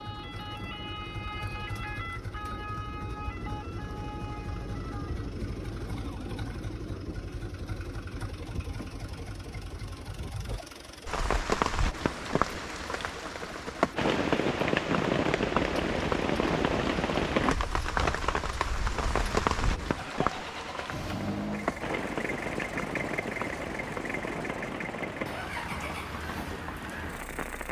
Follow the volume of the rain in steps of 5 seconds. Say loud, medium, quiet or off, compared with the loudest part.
off, off, loud, loud, medium, medium.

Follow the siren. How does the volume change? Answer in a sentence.
The loudness of the siren goes down.